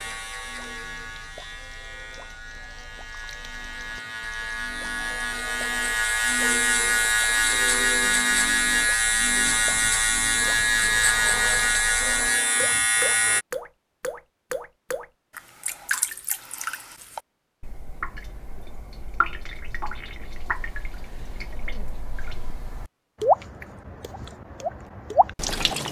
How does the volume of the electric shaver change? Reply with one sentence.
The volume of the electric shaver goes up.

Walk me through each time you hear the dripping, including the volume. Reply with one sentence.
You can hear the dripping from 0.1 to 25.8 s, getting louder.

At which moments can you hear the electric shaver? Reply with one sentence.
You can hear the electric shaver from 0.0 to 13.4 s.